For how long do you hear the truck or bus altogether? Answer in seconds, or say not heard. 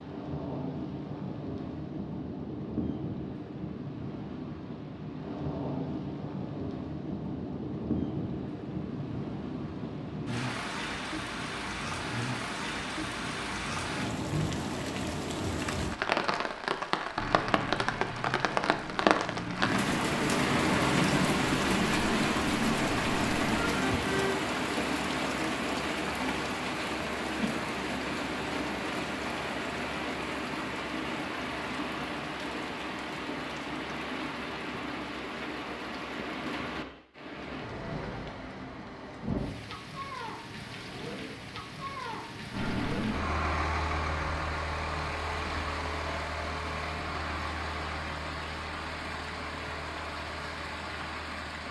16 s.